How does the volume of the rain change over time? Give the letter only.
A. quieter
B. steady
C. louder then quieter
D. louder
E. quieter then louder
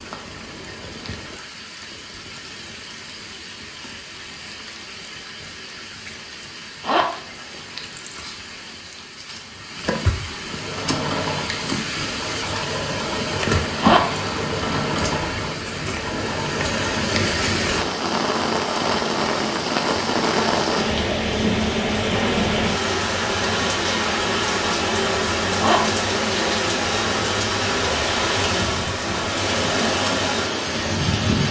D.